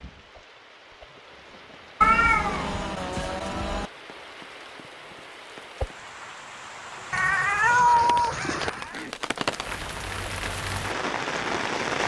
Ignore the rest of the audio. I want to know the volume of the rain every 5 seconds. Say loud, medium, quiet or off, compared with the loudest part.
quiet, medium, loud.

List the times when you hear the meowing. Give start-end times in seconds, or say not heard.
2.0-3.9, 7.1-9.0.